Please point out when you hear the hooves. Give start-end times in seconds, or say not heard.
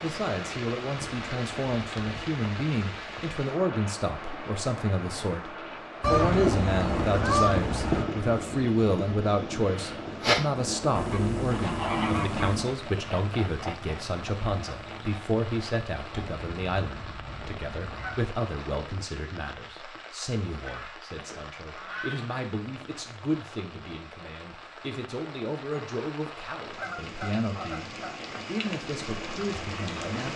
6.0-16.4.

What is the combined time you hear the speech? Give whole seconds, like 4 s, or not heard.
30 s.